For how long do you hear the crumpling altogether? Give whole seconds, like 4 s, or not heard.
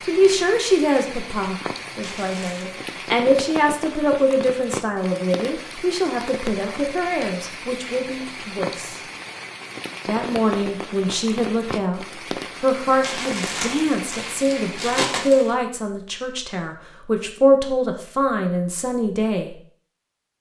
3 s.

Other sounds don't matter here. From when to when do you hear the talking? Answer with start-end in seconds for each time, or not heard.
0.0-9.0, 10.1-19.6.